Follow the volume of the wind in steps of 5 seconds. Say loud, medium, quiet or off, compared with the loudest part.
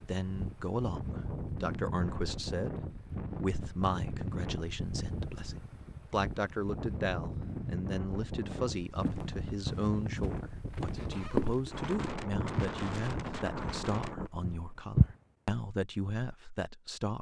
loud, loud, loud, off.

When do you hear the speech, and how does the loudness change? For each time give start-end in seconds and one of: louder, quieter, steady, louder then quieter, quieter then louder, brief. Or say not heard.
0.0-17.1 steady.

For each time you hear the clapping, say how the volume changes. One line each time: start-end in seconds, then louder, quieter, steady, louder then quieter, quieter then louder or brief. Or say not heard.
not heard.